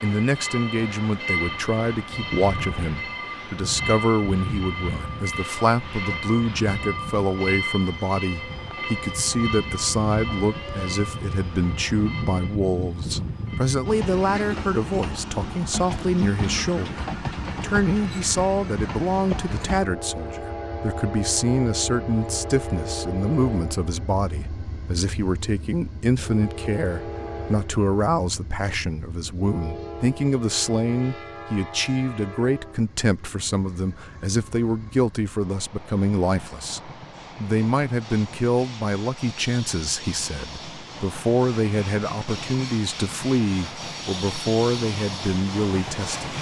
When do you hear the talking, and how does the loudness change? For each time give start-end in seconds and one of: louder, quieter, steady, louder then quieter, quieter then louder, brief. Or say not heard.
0.0-46.3 steady.